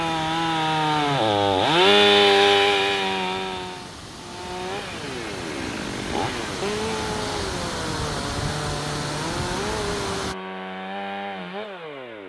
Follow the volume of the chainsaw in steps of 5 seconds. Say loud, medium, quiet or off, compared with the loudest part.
loud, medium, quiet.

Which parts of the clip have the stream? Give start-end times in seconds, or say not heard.
0.0-10.3.